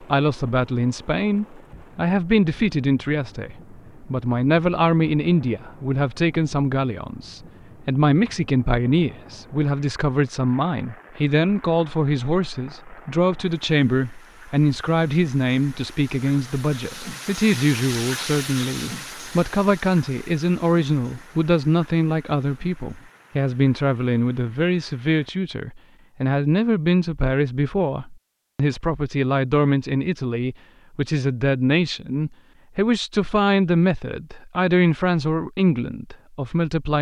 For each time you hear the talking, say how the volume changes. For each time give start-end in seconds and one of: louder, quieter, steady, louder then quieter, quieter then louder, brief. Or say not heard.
0.0-36.9 steady.